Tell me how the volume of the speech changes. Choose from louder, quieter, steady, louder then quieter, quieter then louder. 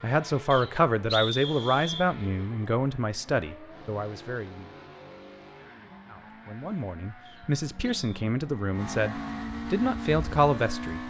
quieter then louder.